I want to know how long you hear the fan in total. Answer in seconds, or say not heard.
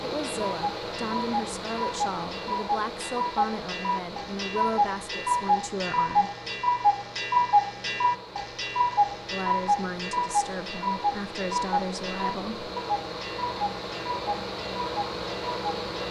16 s.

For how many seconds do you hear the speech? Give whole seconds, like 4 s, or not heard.
10 s.